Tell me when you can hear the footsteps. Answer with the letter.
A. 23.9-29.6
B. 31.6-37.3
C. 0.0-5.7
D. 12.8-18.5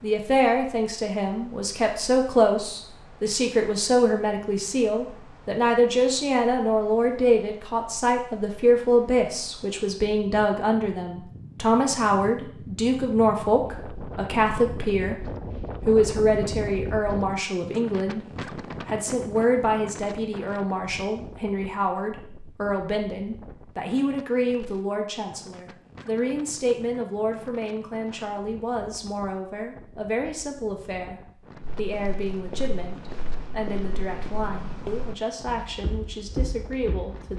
B.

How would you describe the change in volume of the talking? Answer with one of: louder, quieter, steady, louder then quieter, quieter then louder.
quieter.